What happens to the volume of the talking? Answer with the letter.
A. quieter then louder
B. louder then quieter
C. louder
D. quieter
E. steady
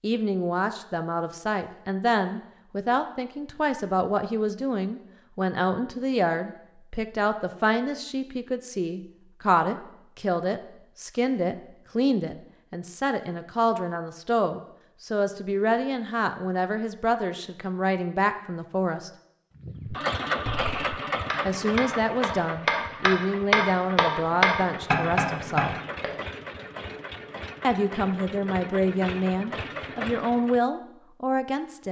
E.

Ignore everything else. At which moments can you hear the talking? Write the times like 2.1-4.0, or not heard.
0.0-19.1, 21.4-25.8, 27.6-31.8.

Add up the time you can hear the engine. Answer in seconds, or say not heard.
11 s.